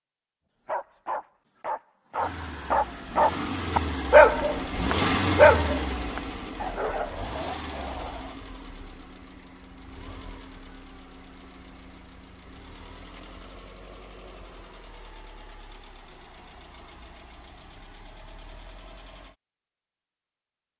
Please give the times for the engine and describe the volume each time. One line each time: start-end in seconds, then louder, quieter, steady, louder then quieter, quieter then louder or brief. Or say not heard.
2.1-19.4 quieter.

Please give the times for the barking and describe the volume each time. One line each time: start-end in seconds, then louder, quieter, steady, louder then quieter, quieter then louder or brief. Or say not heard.
0.7-8.3 louder then quieter.